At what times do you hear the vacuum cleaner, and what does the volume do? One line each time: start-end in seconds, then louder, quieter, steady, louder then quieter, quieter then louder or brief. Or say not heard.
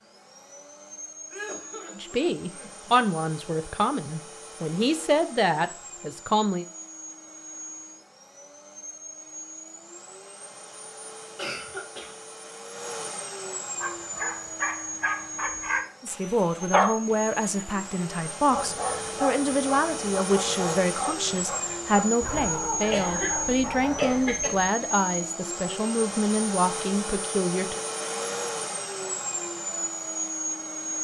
0.0-30.9 louder.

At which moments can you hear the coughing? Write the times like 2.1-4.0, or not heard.
1.3-2.9, 11.3-12.2, 22.9-24.6.